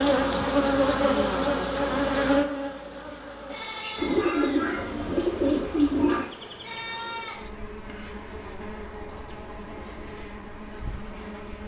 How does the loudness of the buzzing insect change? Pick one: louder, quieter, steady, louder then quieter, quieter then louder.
quieter.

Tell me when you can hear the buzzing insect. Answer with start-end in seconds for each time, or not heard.
0.0-11.6.